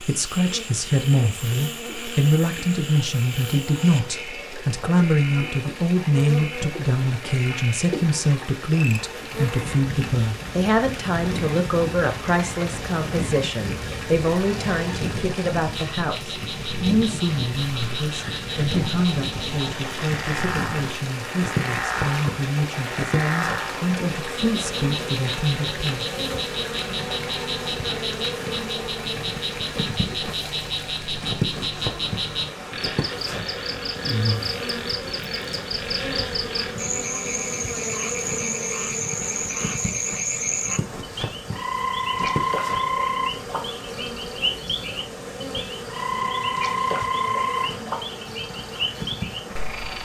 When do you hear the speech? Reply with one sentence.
You can hear the speech from 0.0 to 26.1 s.